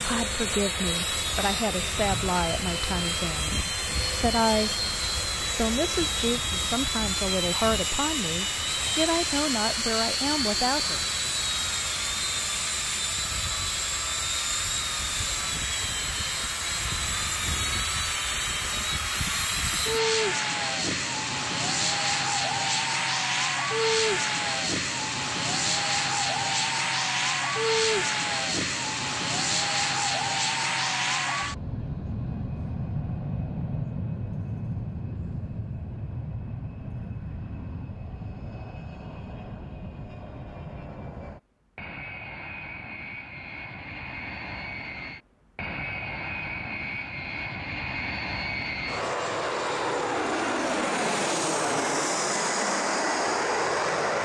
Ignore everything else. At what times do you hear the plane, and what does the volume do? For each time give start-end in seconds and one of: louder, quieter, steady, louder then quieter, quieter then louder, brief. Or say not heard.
0.0-54.1 quieter then louder.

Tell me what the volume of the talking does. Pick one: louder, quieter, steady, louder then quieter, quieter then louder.
steady.